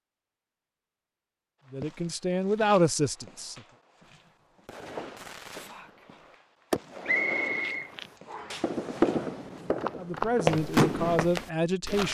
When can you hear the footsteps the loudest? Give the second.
10 s.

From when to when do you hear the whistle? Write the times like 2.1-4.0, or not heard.
7.0-8.7.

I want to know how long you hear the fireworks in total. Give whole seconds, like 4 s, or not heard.
7 s.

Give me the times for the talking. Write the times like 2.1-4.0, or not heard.
1.7-3.6, 9.9-12.0.